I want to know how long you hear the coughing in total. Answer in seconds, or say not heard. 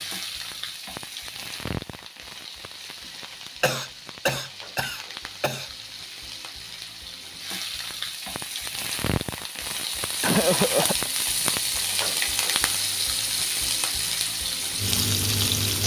3 s.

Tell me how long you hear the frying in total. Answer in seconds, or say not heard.
16 s.